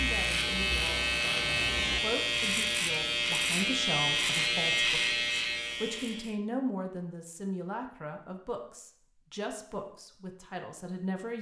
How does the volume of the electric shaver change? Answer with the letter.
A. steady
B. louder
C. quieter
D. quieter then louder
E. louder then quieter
A.